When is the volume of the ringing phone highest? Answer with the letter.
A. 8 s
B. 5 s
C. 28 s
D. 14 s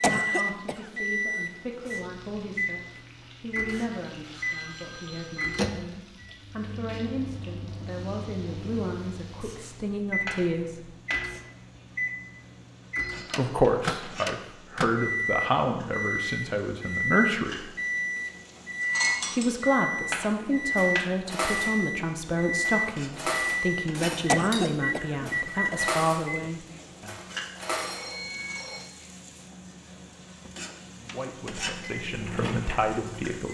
C.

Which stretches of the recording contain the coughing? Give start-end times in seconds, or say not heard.
0.0-1.0, 24.2-25.8.